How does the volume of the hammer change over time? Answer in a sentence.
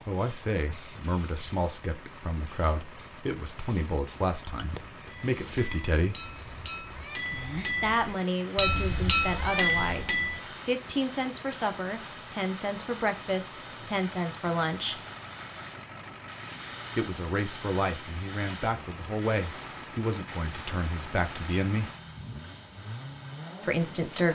The volume of the hammer goes up.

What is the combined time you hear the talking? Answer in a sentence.
The talking can be heard for 19 seconds in total.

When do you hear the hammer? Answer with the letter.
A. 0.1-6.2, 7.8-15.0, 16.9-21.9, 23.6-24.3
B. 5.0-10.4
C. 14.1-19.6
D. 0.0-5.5
B.